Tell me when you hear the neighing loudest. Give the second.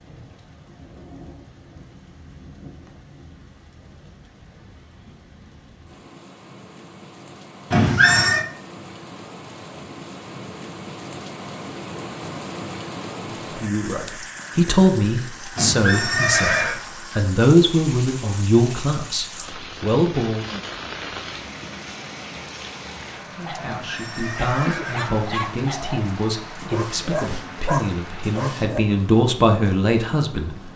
8 s.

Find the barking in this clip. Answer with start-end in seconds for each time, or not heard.
23.4-28.8.